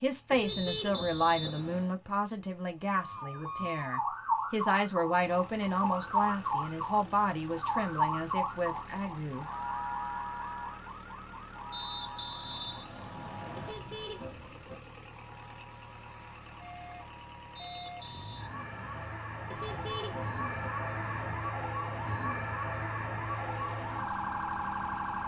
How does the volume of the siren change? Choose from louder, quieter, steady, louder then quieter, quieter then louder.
quieter then louder.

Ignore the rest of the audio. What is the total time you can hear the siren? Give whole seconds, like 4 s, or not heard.
22 s.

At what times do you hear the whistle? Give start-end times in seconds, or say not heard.
0.5-1.9, 11.7-13.8, 17.6-18.5.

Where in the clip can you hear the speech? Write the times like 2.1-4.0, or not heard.
0.0-9.4.